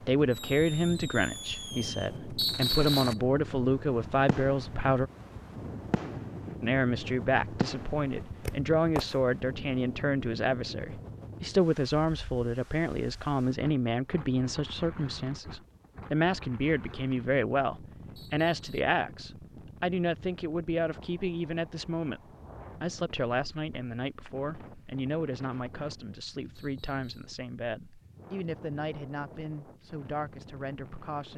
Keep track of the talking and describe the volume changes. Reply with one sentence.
The loudness of the talking goes down.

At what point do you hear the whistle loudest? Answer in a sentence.
The loudest moment of the whistle is at 3 seconds.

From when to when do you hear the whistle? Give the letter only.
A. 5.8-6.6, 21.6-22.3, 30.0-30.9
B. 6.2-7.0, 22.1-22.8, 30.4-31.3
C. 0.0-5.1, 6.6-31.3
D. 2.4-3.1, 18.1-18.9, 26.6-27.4
D.